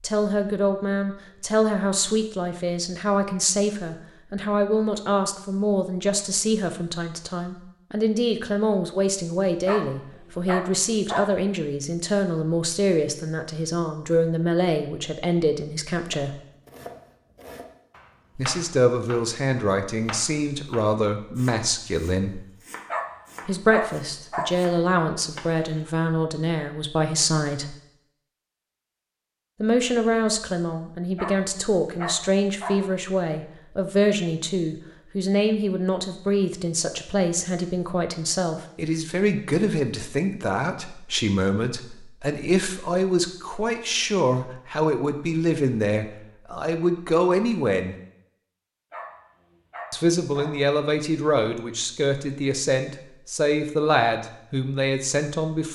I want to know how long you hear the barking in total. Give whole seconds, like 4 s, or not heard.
7 s.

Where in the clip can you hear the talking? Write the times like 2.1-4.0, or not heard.
0.0-16.4, 18.4-22.4, 23.4-27.8, 29.6-48.0, 49.9-55.7.